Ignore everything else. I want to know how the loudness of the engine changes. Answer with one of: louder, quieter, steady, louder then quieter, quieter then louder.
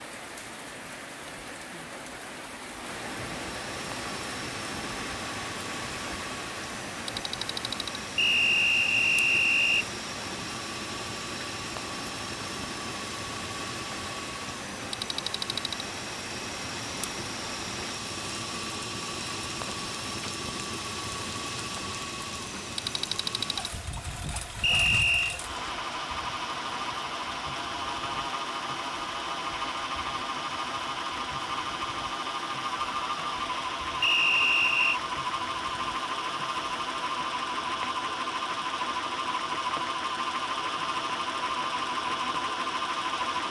louder.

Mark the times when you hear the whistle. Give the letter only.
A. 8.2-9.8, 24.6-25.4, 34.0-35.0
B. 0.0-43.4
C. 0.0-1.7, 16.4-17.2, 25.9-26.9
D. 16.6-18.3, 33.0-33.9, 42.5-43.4
A.